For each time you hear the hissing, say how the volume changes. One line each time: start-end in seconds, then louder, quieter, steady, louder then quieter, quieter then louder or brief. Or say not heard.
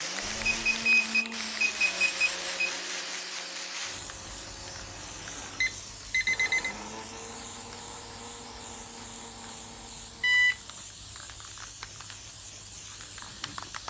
0.0-13.8 quieter.